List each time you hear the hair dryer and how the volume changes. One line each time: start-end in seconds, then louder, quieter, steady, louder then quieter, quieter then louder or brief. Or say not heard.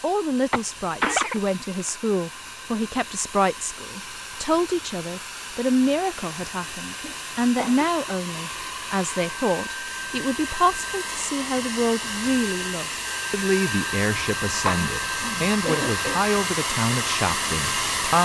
0.0-18.1 louder.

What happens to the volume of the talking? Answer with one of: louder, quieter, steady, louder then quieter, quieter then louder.
steady.